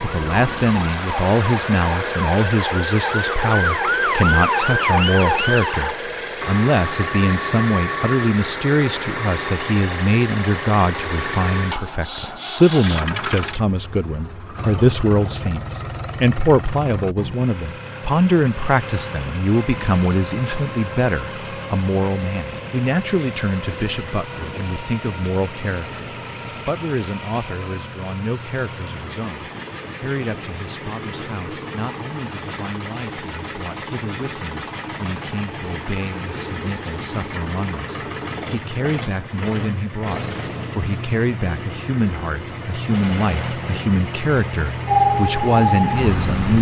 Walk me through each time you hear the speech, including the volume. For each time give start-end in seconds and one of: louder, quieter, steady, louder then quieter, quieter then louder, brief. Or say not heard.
0.0-46.5 quieter then louder.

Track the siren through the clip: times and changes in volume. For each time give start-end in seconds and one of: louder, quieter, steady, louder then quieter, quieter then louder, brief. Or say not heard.
0.0-6.0 louder
44.9-46.5 brief.